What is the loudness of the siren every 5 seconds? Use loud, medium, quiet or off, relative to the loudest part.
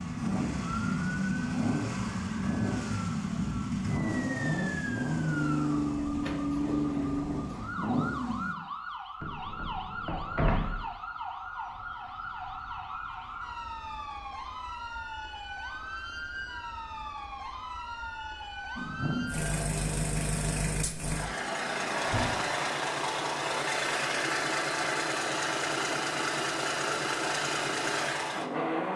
loud, loud, loud, loud, off, off.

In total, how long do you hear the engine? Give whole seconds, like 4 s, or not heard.
19 s.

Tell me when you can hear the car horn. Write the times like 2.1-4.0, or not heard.
not heard.